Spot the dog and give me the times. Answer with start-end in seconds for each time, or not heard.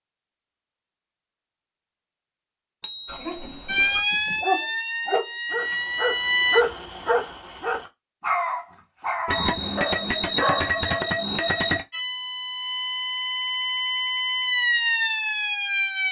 3.0-11.0.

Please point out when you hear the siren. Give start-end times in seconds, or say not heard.
3.6-6.7, 11.9-16.0.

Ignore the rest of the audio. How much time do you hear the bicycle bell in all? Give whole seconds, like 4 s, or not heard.
4 s.